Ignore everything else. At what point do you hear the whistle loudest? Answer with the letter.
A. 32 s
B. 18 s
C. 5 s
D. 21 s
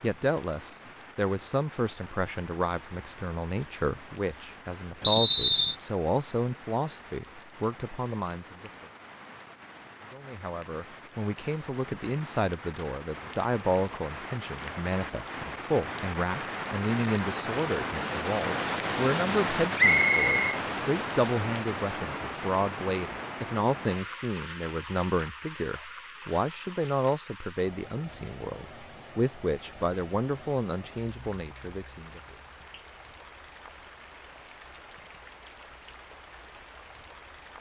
C.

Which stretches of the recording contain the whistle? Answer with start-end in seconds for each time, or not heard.
5.0-5.8, 19.8-20.6.